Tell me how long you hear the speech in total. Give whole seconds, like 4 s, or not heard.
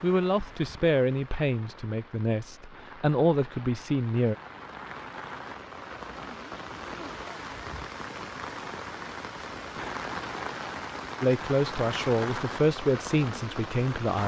7 s.